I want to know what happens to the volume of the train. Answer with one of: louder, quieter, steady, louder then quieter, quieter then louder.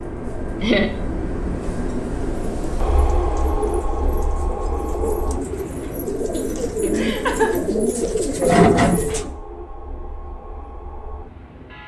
quieter.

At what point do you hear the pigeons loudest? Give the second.
9 s.